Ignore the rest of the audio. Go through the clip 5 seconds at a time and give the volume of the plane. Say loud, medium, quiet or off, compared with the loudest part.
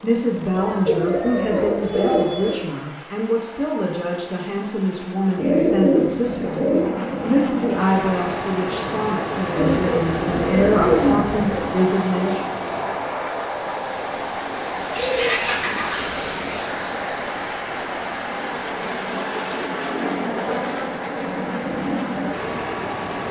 quiet, loud, loud, loud, loud.